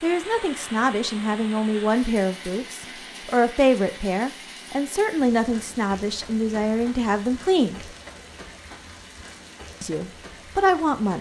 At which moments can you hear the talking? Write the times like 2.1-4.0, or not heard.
0.0-7.9, 9.8-11.1.